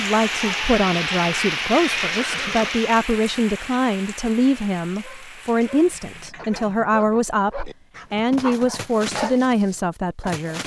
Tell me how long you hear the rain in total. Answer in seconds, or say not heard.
6 s.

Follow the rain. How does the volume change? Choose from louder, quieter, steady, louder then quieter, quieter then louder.
quieter.